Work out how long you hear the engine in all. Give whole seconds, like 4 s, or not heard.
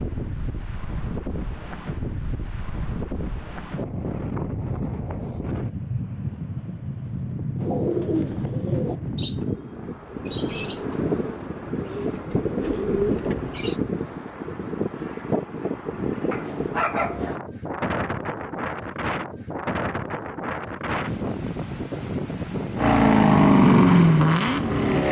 2 s.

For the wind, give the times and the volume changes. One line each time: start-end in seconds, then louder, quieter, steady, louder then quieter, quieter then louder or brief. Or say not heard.
0.0-25.0 steady.